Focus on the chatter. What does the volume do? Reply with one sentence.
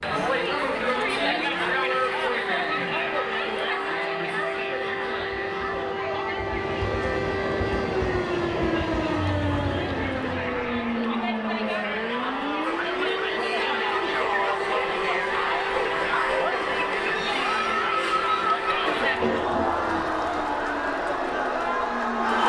The volume of the chatter goes down, then up.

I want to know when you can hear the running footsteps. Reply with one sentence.
The running footsteps can't be heard in this clip.